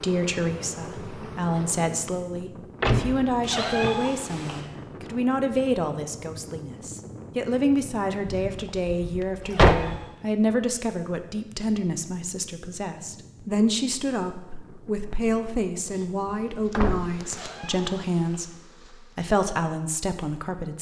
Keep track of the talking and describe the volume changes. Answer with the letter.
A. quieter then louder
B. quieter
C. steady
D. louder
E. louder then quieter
C.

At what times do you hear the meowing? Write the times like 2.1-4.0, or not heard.
3.4-4.6, 9.4-10.2, 17.2-18.4.